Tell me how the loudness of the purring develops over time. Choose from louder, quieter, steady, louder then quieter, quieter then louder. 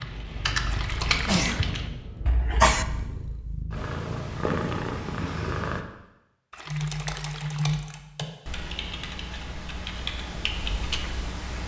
louder.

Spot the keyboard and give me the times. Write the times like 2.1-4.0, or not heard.
0.0-2.8, 6.7-11.6.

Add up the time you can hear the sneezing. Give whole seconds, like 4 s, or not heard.
2 s.